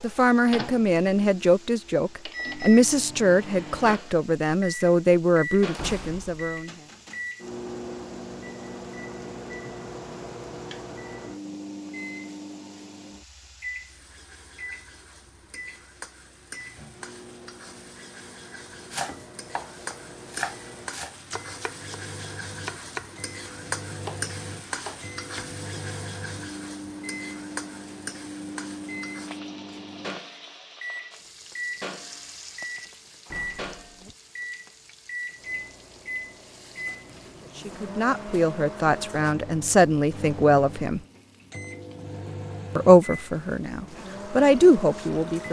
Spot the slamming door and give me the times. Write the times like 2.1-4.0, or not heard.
5.8-6.7, 33.2-33.9.